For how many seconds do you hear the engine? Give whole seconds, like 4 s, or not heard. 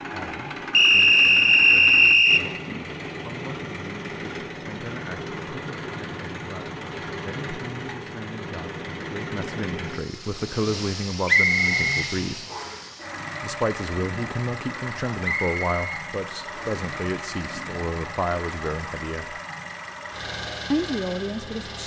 22 s.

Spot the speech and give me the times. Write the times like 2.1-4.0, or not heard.
0.1-12.4, 13.4-19.4, 20.7-21.8.